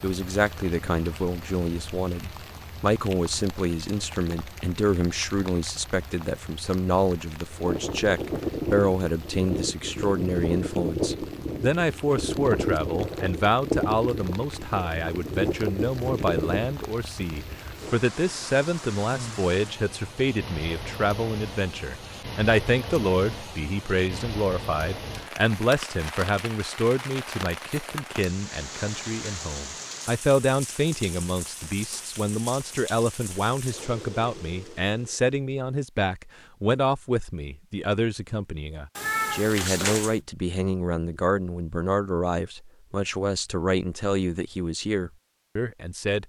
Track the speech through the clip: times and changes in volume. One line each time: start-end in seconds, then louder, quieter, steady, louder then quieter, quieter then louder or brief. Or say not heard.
0.0-46.2 steady.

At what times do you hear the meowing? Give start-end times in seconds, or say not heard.
39.0-40.2.